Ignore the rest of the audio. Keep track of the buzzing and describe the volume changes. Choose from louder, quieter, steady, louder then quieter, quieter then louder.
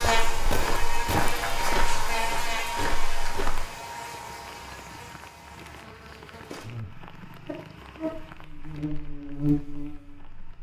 quieter then louder.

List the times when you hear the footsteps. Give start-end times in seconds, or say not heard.
0.0-3.6.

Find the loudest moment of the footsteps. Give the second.
1 s.